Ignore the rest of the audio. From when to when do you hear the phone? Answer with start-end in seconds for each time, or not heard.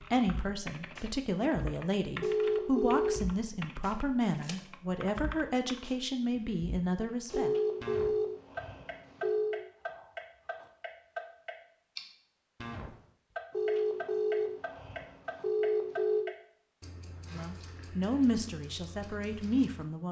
2.2-3.2, 7.3-9.6, 13.5-16.2.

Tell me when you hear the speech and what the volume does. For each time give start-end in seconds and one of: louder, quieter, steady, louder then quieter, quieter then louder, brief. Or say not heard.
0.0-7.5 steady
17.3-20.0 brief.